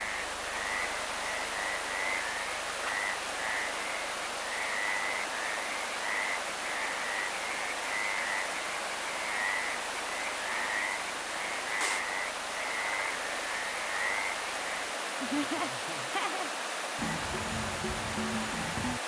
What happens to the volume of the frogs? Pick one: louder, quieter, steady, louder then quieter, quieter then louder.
steady.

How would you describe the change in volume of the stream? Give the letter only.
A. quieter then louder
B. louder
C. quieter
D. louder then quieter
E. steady
E.